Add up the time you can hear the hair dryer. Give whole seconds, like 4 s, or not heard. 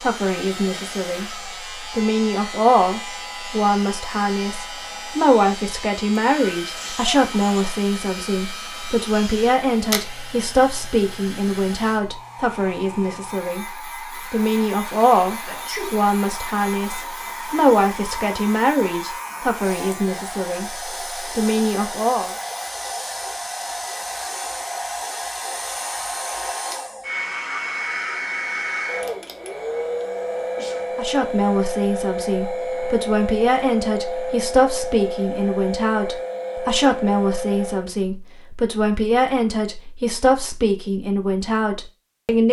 38 s.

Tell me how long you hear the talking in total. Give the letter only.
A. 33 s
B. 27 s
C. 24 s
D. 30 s
A.